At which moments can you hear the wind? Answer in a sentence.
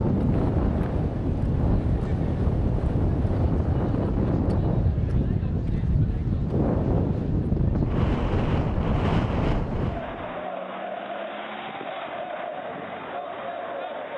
The wind can be heard from 0.0 to 10.4 s.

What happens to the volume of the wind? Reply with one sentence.
The loudness of the wind stays about the same.